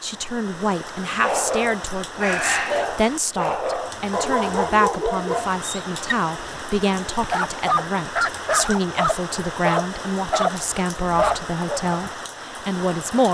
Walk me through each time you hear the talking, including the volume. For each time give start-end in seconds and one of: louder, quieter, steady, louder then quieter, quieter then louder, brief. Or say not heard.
0.0-13.2 steady.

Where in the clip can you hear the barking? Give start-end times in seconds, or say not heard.
1.2-11.9.